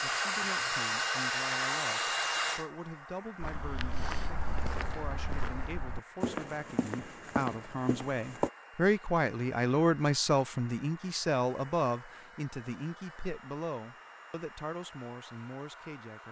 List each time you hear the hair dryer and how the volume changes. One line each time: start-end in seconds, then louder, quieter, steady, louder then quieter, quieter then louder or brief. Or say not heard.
0.0-16.2 quieter.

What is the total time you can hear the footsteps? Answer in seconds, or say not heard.
5 s.